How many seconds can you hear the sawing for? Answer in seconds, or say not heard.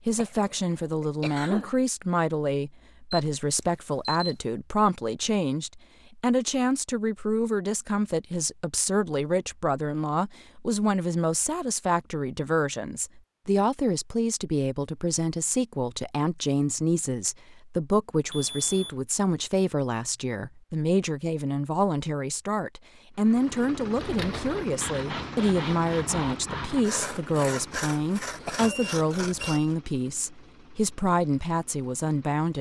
6 s.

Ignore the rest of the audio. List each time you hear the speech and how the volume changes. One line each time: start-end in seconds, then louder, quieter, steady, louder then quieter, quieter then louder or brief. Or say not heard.
0.1-32.5 steady.